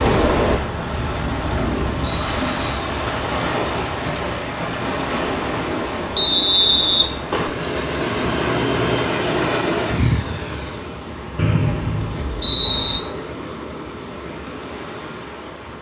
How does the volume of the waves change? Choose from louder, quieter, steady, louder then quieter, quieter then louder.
quieter.